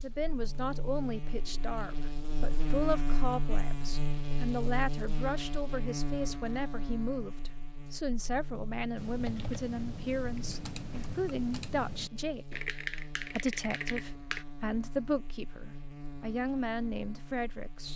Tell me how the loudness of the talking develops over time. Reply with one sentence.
The loudness of the talking stays about the same.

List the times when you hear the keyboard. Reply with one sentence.
You can hear the keyboard from 8.9 to 14.4 s.